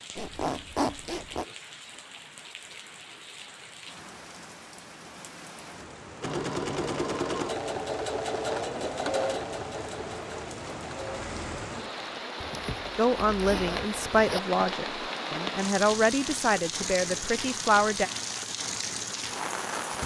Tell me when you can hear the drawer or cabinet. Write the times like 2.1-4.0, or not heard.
not heard.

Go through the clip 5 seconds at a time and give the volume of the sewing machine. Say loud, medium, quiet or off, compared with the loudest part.
off, loud, medium, off.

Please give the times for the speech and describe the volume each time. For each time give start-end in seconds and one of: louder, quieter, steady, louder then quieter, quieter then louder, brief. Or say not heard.
12.9-18.1 steady.